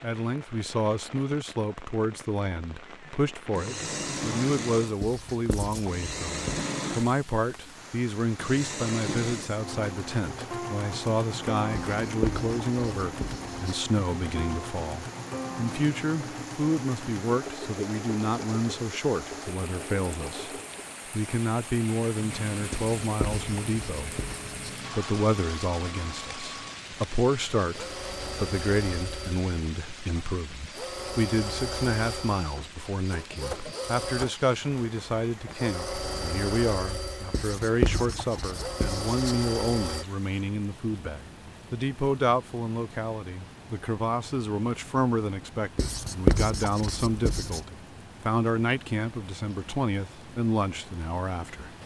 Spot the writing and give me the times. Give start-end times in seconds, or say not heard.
5.0-6.7, 11.7-13.8, 22.7-24.7, 37.3-39.4, 45.8-47.6.